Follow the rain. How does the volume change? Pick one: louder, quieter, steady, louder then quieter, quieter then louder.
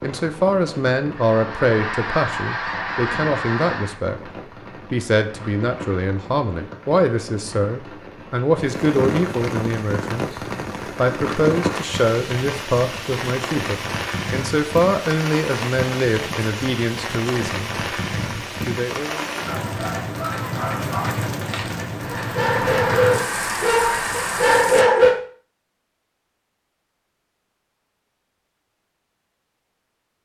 louder.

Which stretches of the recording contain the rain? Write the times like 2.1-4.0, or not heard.
0.0-24.9.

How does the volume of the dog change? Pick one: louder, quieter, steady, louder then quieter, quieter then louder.
louder.